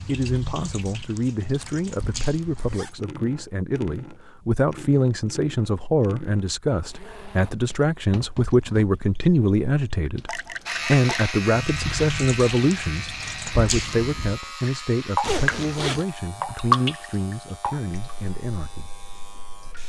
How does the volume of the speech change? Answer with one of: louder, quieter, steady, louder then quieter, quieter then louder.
louder then quieter.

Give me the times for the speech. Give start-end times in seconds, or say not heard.
0.0-18.9.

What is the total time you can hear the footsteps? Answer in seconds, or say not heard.
not heard.